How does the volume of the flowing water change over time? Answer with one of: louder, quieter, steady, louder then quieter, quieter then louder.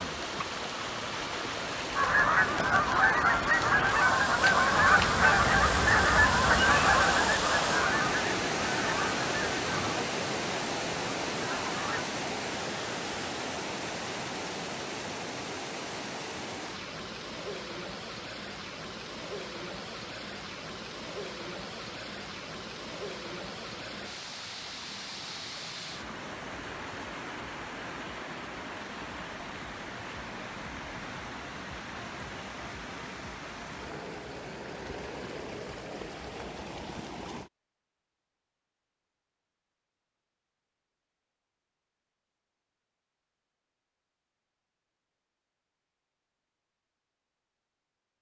quieter.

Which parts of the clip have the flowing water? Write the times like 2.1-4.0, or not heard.
0.0-37.5.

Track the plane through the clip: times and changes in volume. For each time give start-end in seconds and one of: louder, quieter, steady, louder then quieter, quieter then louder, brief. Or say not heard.
not heard.